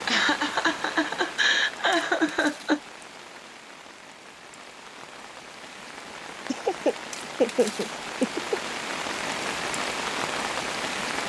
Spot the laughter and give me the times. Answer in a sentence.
The laughter can be heard from 0.1 to 2.8 s and from 6.5 to 8.8 s.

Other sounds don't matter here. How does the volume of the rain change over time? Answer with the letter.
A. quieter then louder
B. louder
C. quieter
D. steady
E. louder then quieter
A.